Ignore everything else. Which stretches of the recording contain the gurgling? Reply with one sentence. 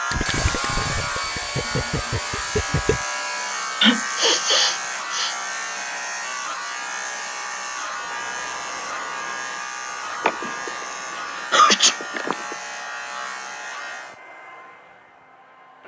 You can hear the gurgling from 0.1 to 3.0 s.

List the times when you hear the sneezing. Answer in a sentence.
The sneezing can be heard from 3.8 to 5.3 s and from 10.2 to 12.6 s.